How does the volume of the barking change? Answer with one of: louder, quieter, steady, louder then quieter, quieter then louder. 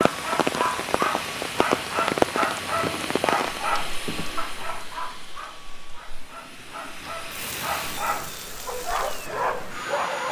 quieter then louder.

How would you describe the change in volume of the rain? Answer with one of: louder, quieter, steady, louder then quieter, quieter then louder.
quieter then louder.